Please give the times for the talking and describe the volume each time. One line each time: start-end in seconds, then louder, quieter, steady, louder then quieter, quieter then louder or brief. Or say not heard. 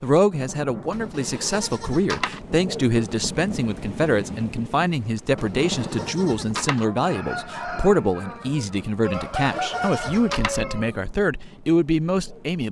0.0-12.6 steady.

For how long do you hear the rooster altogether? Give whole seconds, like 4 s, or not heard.
4 s.